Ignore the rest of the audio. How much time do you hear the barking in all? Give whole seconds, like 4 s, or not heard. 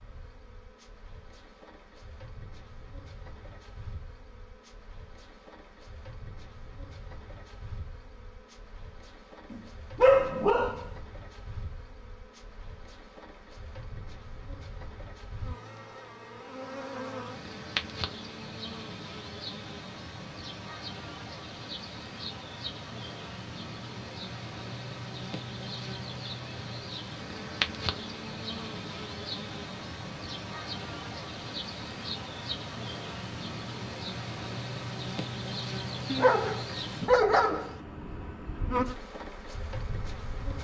3 s.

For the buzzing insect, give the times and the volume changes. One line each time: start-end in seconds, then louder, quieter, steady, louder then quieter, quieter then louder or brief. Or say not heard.
0.0-40.5 louder.